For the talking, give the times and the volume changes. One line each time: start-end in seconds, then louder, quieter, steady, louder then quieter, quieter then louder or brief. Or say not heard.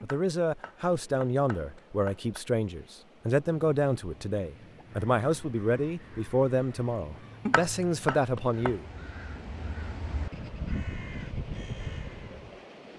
0.0-8.8 steady.